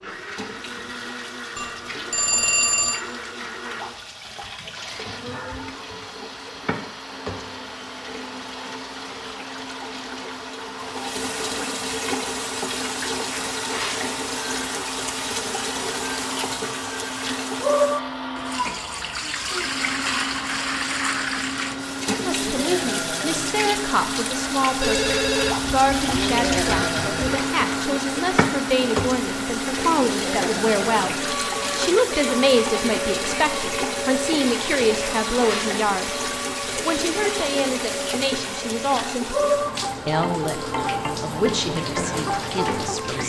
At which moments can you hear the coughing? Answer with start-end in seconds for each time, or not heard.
not heard.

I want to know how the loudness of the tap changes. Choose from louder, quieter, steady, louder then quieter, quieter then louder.
louder.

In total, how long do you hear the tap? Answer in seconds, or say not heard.
43 s.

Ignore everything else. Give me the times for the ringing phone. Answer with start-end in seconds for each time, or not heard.
1.6-3.0, 24.8-26.8, 40.5-41.0.